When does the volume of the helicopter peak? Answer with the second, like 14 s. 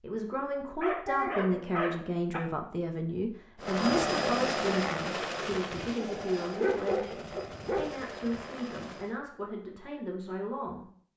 4 s.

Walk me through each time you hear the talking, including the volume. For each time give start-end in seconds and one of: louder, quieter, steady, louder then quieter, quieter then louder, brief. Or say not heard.
0.0-10.8 quieter.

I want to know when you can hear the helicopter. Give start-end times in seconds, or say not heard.
3.6-9.2.